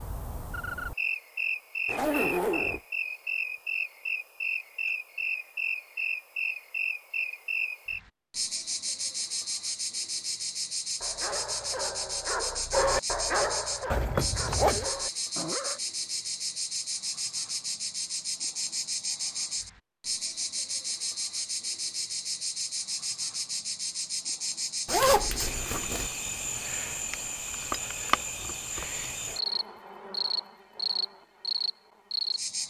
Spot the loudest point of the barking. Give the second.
13 s.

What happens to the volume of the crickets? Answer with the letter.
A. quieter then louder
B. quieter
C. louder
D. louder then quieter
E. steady
E.